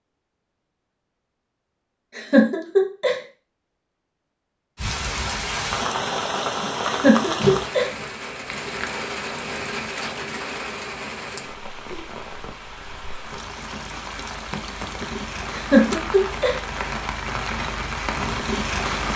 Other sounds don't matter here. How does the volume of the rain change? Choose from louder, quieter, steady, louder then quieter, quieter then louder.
quieter then louder.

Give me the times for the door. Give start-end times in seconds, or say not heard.
7.3-8.1.